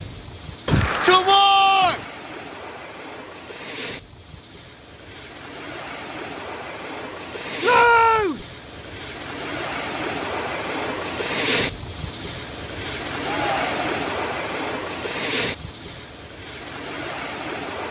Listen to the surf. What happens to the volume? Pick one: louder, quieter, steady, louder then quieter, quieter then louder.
louder.